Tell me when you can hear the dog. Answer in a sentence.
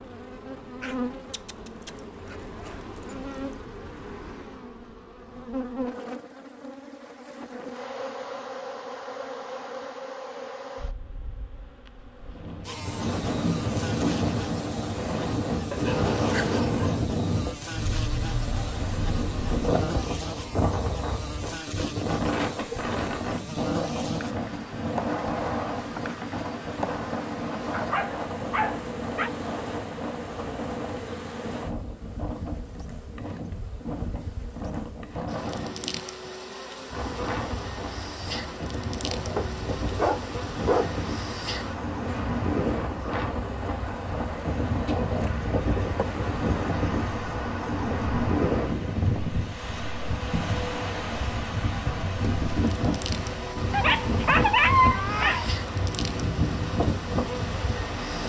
You can hear the dog from 0.8 to 3.4 s, from 15.7 to 17.1 s, from 27.7 to 29.3 s, from 39.4 to 41.0 s and from 53.7 to 55.5 s.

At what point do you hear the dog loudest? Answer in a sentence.
The volume of the dog peaks at 55 seconds.